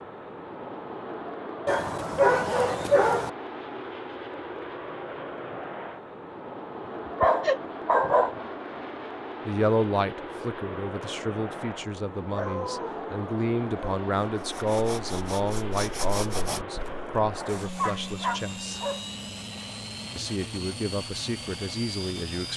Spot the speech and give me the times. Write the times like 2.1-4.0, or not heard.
9.4-18.8, 20.1-22.5.